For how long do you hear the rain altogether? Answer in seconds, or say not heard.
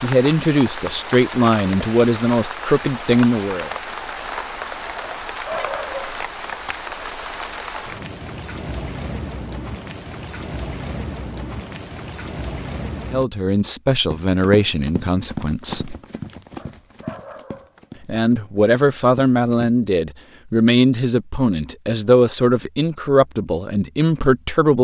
13 s.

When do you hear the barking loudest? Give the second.
6 s.